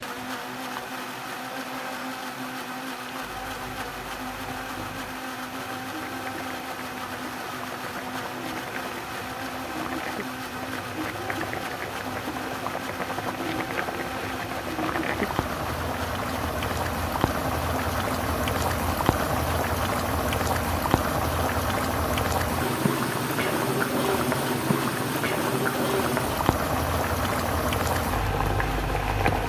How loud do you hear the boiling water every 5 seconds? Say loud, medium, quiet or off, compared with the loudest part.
quiet, quiet, medium, loud, loud, loud.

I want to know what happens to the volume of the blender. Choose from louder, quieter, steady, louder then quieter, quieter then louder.
steady.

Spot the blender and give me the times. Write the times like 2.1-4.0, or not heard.
0.0-29.4.